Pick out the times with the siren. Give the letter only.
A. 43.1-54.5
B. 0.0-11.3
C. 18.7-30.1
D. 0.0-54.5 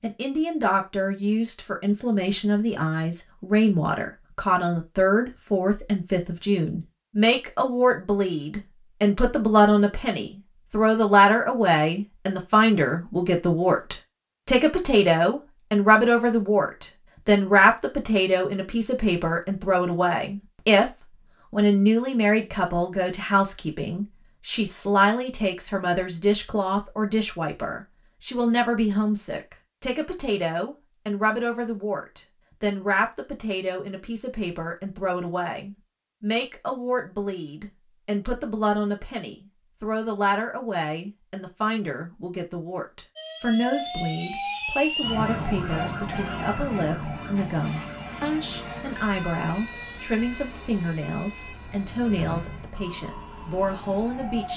A.